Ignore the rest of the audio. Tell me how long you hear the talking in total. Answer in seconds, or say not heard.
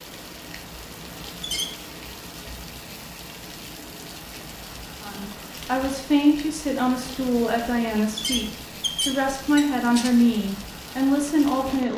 7 s.